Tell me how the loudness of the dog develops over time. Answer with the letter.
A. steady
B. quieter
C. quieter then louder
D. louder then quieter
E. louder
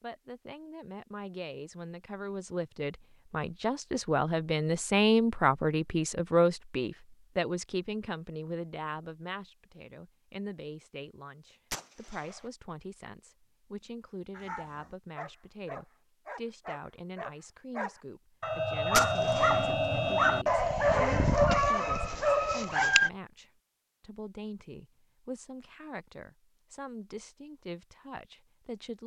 E.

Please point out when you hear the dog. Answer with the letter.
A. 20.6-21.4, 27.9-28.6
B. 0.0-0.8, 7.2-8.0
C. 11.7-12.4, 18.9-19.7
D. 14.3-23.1
D.